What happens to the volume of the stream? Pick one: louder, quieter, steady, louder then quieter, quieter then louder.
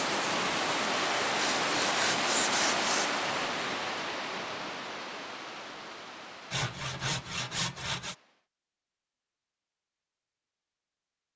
quieter.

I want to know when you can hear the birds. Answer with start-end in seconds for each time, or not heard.
not heard.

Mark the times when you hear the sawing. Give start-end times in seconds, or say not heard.
1.4-3.1, 6.5-8.2.